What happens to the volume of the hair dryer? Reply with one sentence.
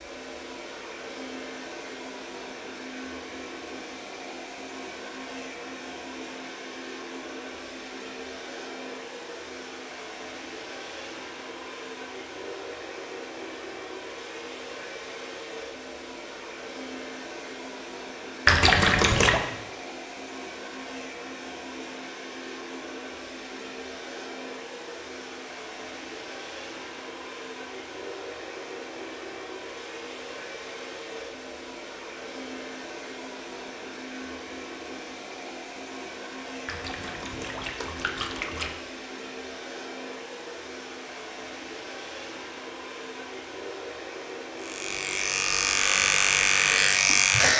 The volume of the hair dryer stays about the same.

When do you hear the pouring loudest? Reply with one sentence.
The volume of the pouring peaks at 19 seconds.